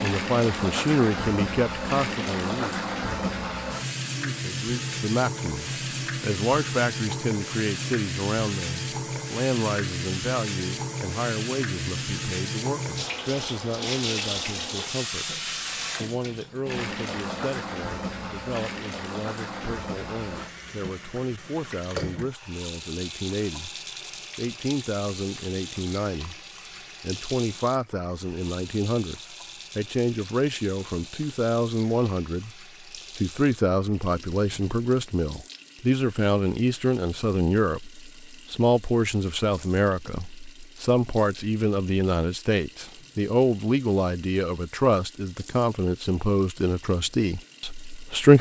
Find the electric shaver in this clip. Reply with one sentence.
You can't hear the electric shaver here.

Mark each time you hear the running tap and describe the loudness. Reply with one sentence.
You can hear the running tap from 0.0 to 48.3 s, getting quieter.